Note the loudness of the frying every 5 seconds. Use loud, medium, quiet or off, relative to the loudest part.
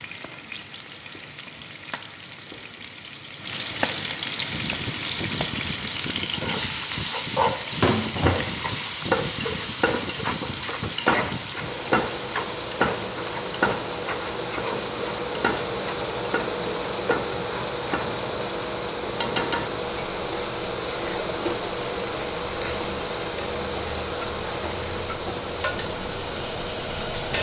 medium, loud, loud, medium, medium, medium.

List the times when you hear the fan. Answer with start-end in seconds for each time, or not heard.
4.5-27.3.